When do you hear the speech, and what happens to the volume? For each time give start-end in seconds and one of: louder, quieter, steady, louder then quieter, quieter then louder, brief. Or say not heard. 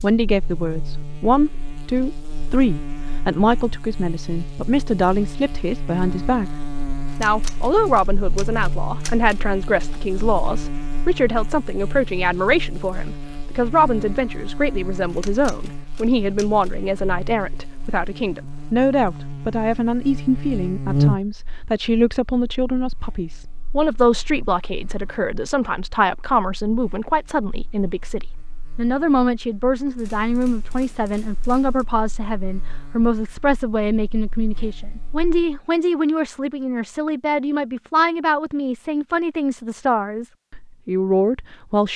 0.0-41.9 steady.